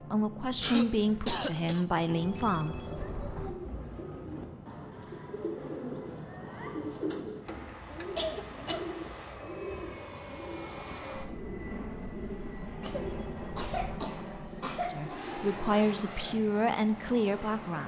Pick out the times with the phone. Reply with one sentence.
You can hear the phone from 2.0 to 3.5 s and from 12.7 to 14.0 s.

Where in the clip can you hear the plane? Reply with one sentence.
You can hear the plane from 0.0 to 17.8 s.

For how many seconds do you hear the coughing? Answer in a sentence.
You can hear the coughing for 5 seconds altogether.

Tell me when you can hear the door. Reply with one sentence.
You can't hear the door here.